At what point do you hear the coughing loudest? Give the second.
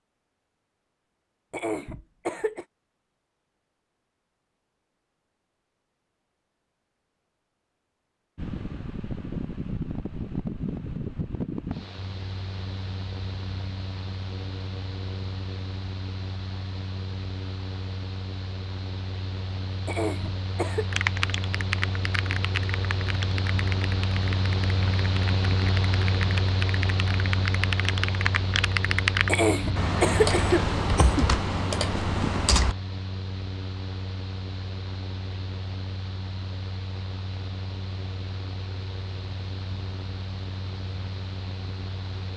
30 s.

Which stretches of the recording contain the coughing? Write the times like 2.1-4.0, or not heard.
1.5-2.6, 19.9-20.9, 29.2-31.3.